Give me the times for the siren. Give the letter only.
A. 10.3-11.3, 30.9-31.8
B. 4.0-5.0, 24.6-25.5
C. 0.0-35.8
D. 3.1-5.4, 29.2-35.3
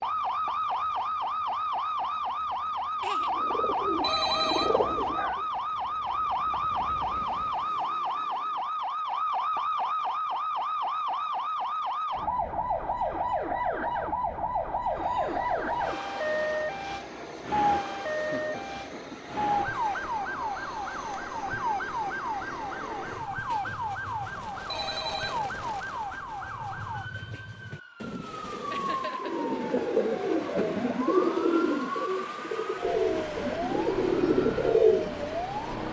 C.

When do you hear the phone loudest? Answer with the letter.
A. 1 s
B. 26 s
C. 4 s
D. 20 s
C.